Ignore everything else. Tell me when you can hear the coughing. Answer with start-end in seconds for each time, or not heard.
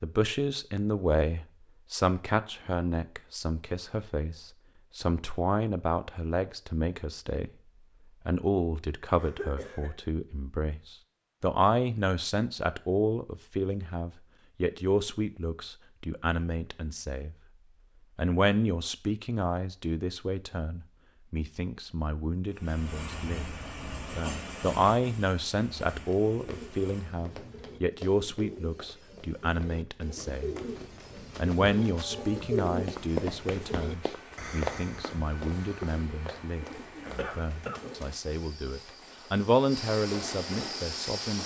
9.2-9.9, 37.1-37.9.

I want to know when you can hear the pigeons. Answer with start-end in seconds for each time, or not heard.
26.4-38.1.